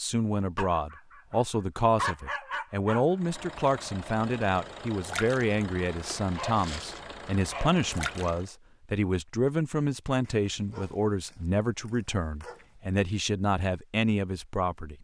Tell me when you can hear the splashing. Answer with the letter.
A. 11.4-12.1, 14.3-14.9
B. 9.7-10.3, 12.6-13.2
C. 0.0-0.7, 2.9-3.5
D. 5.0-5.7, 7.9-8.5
D.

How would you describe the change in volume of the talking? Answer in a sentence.
The loudness of the talking stays about the same.